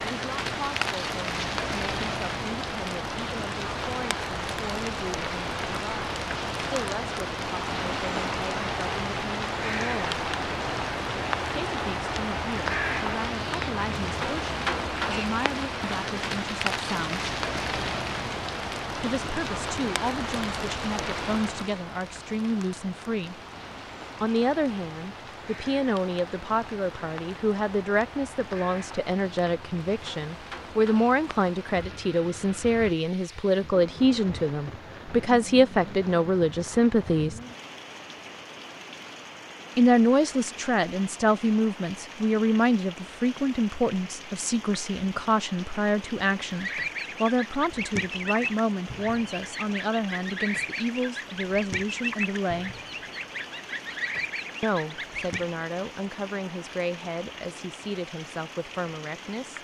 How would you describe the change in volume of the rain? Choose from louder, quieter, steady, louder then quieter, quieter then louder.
quieter.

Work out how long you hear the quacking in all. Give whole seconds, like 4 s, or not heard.
9 s.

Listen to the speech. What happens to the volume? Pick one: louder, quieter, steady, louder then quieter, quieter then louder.
louder then quieter.